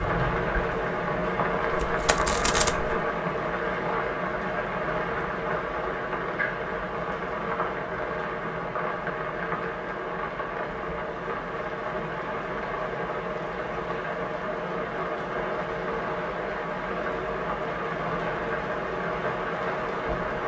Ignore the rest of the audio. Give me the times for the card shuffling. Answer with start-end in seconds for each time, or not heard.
1.7-3.0.